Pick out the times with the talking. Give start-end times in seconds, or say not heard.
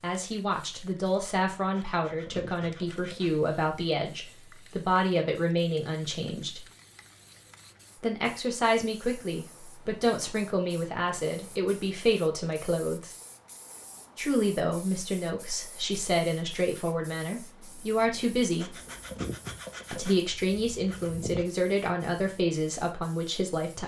0.0-6.7, 8.0-13.2, 14.2-18.8, 19.9-23.8.